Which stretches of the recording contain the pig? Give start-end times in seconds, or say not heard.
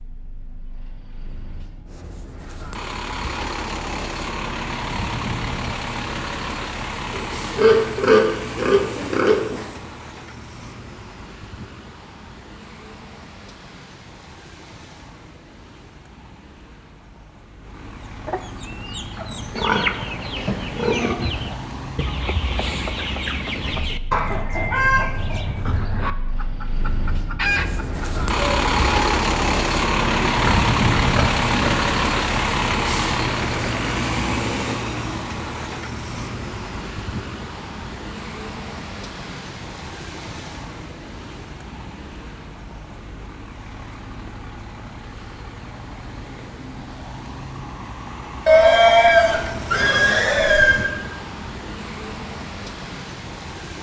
7.1-9.8, 19.3-21.1, 30.1-31.9, 48.5-50.9.